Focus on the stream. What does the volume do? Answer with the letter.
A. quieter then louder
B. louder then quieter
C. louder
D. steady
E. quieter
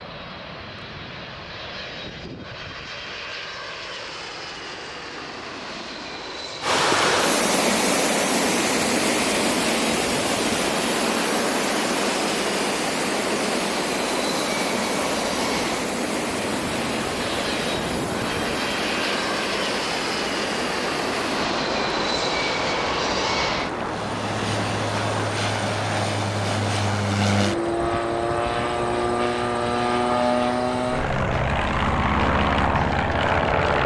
E.